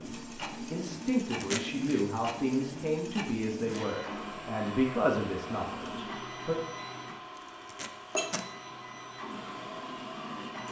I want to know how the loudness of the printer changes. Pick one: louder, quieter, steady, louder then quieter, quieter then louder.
steady.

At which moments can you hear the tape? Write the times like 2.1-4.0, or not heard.
1.2-1.9, 7.3-8.5.